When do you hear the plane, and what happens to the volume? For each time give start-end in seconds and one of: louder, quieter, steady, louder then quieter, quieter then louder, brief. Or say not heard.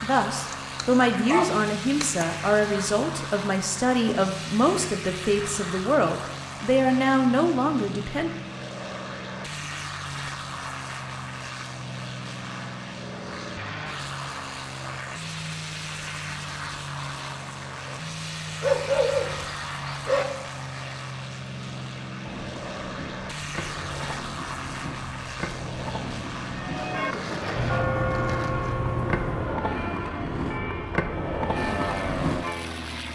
0.0-33.1 steady.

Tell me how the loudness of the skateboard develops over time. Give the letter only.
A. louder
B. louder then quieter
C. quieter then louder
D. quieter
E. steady
A.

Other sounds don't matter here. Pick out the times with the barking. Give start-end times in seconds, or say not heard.
0.5-2.2, 18.6-20.2.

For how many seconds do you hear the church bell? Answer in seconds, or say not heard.
6 s.